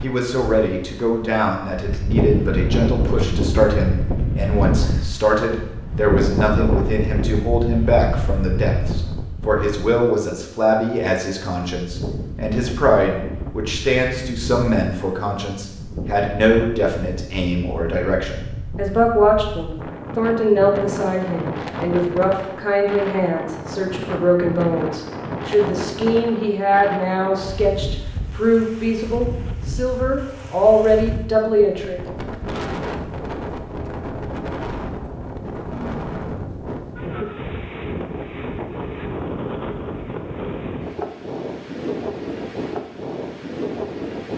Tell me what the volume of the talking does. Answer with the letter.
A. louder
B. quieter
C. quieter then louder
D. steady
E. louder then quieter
D.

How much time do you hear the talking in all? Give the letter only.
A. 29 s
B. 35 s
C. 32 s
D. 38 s
C.